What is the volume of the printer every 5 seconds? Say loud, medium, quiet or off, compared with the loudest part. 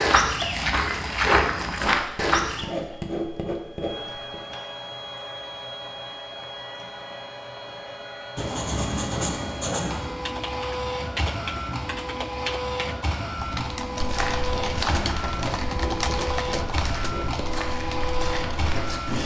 medium, medium, loud, loud.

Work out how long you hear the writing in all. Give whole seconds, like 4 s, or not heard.
7 s.